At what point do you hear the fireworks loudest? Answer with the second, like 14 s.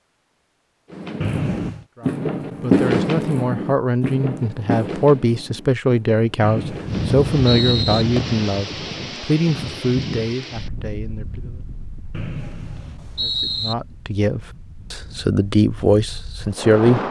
3 s.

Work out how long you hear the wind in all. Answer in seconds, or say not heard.
10 s.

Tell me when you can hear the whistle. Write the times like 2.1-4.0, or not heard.
1.2-1.9, 6.4-8.1, 12.1-13.8.